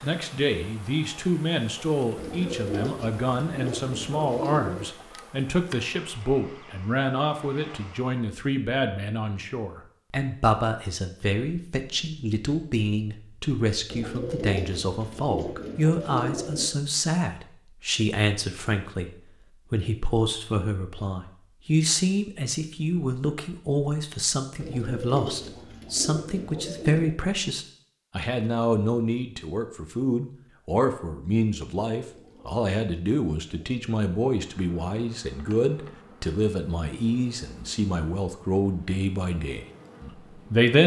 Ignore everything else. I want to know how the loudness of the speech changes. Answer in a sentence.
The volume of the speech stays about the same.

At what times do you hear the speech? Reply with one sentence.
The speech can be heard from 0.0 to 19.1 s and from 19.7 to 40.8 s.